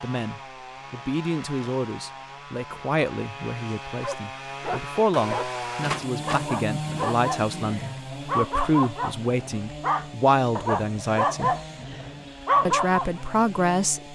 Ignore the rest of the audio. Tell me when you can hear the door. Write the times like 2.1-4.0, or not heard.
5.8-6.5.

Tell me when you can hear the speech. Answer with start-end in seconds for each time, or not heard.
0.0-11.6, 12.7-14.1.